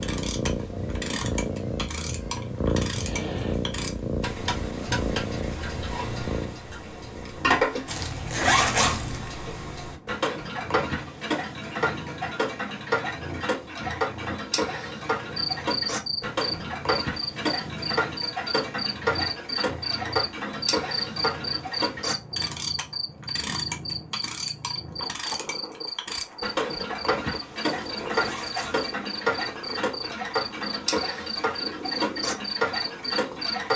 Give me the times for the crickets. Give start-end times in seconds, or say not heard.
15.3-33.7.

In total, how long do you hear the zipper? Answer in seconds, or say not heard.
3 s.